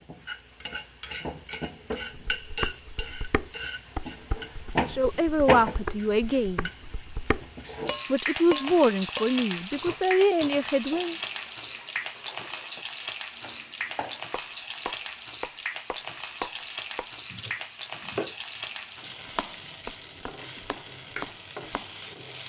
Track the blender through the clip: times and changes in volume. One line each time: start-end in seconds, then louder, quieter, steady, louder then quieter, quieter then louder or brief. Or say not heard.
not heard.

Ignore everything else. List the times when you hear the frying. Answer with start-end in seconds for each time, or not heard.
0.0-22.4.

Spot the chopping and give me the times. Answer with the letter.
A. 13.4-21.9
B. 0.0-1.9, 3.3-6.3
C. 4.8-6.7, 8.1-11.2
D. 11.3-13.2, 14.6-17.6
A.